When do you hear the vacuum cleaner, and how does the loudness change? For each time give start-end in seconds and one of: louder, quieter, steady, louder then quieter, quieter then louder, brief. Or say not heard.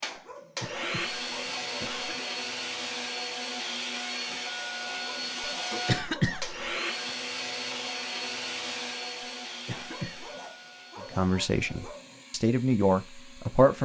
0.0-13.8 quieter.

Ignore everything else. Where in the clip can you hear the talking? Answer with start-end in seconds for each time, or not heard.
11.1-13.8.